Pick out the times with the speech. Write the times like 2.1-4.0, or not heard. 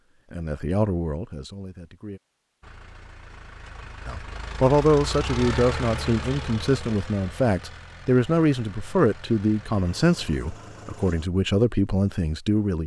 0.3-2.2, 4.0-12.8.